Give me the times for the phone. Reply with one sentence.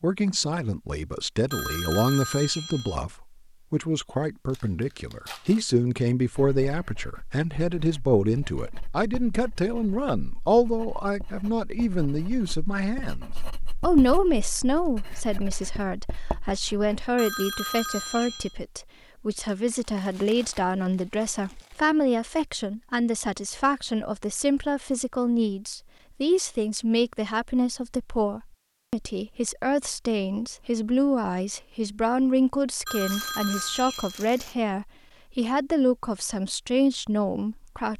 You can hear the phone from 1.5 to 3.0 s, from 17.1 to 18.6 s and from 32.9 to 34.2 s.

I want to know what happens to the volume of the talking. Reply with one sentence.
The volume of the talking stays about the same.